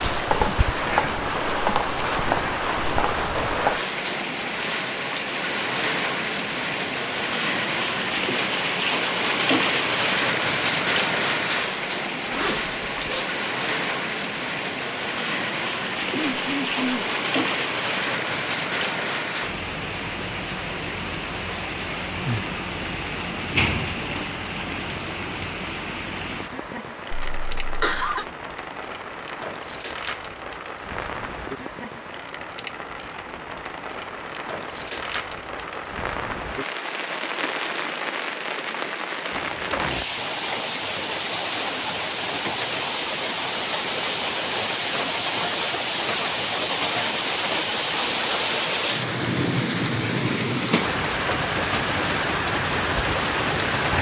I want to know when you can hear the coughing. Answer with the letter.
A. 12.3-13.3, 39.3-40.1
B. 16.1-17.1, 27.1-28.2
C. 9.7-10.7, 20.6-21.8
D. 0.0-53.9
B.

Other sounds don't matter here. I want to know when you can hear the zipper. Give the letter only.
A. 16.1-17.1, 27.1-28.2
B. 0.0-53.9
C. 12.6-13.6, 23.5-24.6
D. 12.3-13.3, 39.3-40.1
D.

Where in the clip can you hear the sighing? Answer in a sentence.
You can't hear the sighing here.